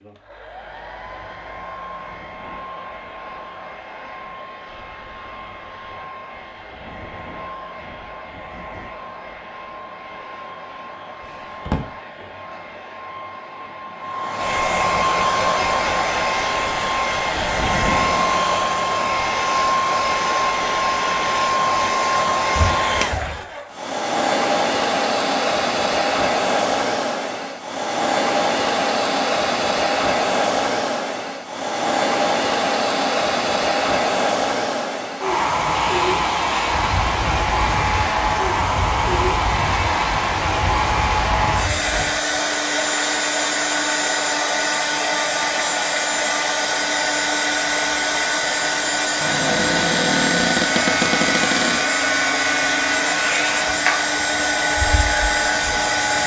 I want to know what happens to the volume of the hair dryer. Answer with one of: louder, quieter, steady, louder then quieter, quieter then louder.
louder.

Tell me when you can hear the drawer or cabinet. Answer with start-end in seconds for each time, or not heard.
11.2-11.9, 22.6-23.4, 49.2-51.9.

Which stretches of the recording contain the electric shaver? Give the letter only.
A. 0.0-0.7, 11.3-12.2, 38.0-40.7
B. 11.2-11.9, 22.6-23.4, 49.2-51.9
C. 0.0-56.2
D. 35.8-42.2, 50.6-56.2
D.